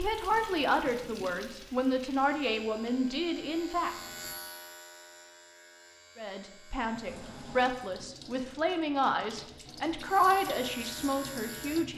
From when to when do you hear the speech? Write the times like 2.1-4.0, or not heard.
0.0-4.0, 6.2-11.9.